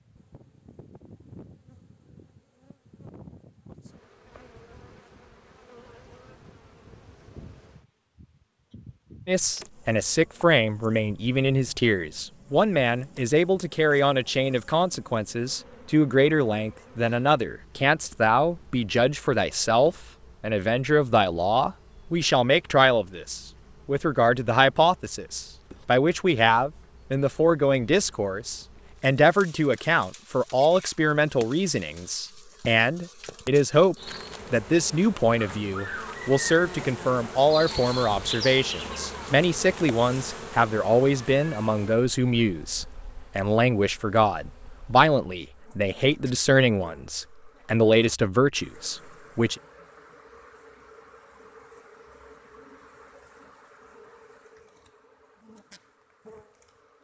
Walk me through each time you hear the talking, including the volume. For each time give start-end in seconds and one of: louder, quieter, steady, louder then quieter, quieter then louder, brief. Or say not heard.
9.2-49.5 steady.